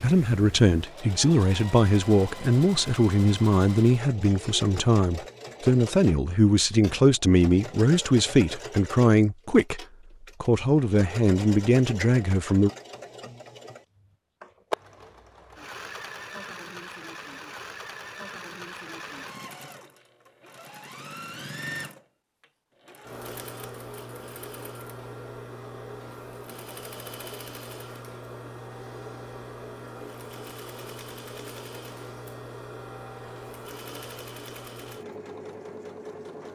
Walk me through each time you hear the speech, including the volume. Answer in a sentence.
The speech can be heard from 0.0 to 12.7 s, at a steady volume.